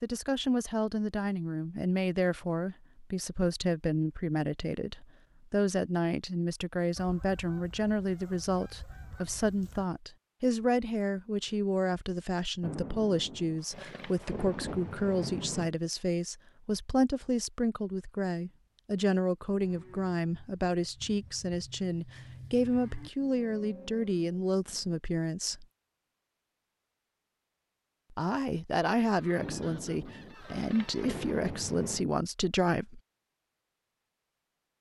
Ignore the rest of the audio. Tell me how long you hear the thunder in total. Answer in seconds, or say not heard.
6 s.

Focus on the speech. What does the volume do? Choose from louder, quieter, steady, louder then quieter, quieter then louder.
steady.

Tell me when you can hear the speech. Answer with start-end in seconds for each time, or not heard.
0.0-25.6, 28.1-33.0.